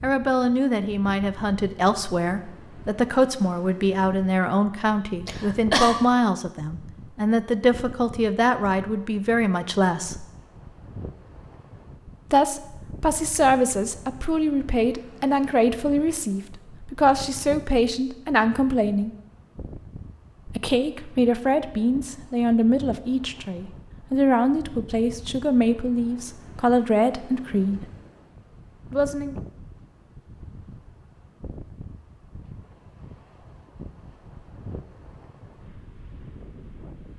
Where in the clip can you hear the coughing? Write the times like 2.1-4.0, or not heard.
5.2-6.0.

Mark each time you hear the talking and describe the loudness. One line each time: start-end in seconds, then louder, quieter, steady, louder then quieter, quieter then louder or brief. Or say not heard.
0.0-10.2 steady
12.3-19.1 steady
20.4-27.9 steady
28.9-29.4 brief.